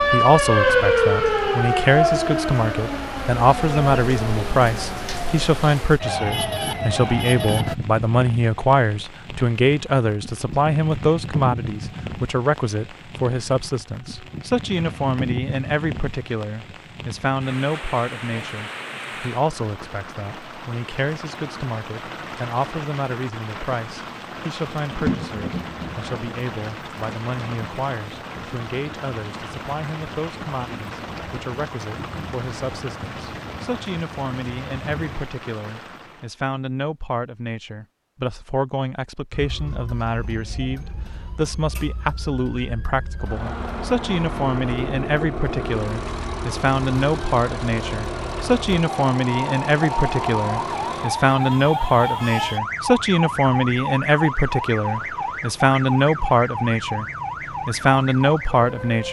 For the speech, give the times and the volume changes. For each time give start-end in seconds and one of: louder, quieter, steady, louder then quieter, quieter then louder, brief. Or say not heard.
0.1-57.0 quieter then louder
57.6-59.0 brief.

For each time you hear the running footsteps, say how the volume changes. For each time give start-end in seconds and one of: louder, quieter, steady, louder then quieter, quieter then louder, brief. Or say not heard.
not heard.